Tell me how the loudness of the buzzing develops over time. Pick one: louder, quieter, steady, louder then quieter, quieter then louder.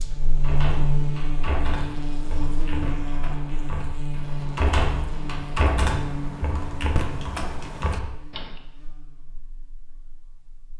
quieter.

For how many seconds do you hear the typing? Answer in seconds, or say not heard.
8 s.